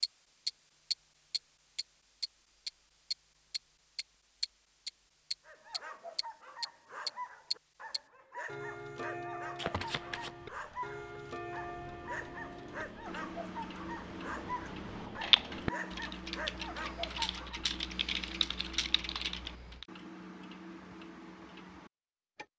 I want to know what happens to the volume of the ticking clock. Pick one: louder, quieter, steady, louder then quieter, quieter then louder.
quieter.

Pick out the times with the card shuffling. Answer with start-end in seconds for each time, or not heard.
9.6-10.3.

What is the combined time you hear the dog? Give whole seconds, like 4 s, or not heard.
12 s.